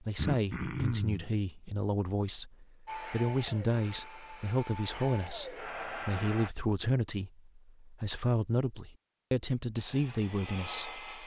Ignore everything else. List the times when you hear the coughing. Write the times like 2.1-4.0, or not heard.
0.1-1.3.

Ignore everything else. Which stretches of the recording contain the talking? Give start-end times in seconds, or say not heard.
0.0-11.0.